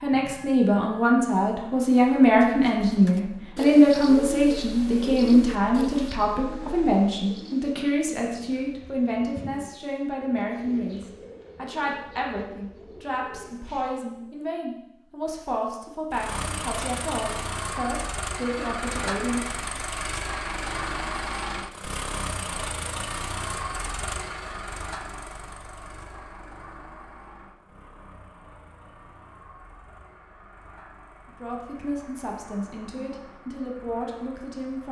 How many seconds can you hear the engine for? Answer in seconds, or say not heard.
26 s.